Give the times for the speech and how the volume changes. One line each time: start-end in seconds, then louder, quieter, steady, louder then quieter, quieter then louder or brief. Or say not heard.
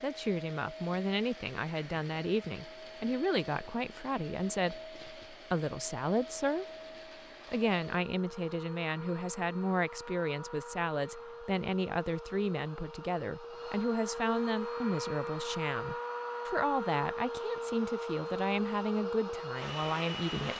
0.0-6.7 steady
7.5-20.5 steady.